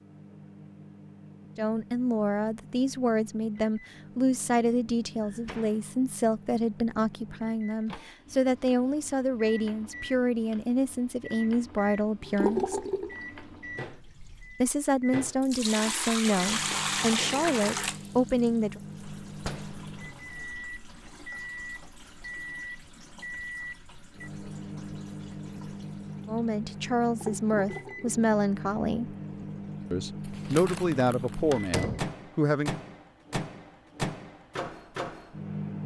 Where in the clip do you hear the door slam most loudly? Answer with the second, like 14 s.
32 s.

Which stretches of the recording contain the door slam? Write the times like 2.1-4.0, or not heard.
5.2-6.0, 19.4-19.9, 31.5-32.1.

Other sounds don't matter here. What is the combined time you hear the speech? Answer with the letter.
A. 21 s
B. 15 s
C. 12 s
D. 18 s
A.